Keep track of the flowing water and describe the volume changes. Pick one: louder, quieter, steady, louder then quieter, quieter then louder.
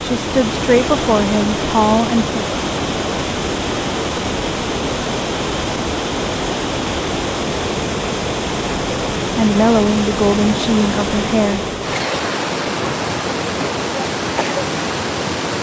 steady.